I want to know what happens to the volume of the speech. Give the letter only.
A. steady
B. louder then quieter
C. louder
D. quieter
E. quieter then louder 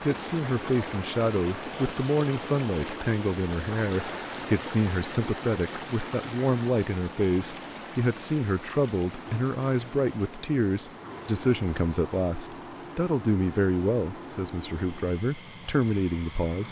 A.